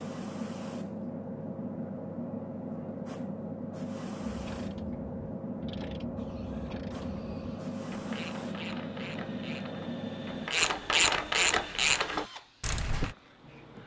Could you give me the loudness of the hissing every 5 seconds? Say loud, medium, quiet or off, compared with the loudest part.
loud, loud, medium.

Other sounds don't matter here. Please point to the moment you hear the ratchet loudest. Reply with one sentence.
The loudest moment of the ratchet is at 11 seconds.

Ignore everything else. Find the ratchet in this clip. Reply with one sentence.
The ratchet can be heard from 4.2 to 13.2 s.